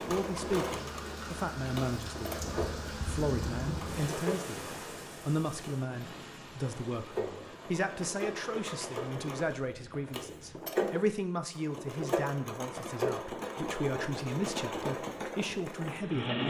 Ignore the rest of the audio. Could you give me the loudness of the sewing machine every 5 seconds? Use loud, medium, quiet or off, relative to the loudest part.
loud, medium, loud, loud.